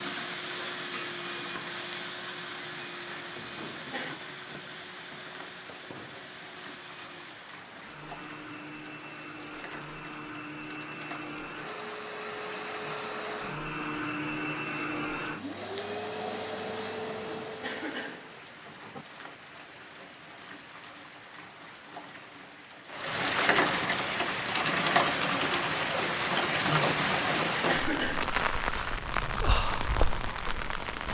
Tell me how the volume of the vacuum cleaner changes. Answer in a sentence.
The volume of the vacuum cleaner goes down, then up.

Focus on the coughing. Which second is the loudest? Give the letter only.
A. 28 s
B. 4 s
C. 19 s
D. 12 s
A.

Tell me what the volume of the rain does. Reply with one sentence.
The loudness of the rain goes up.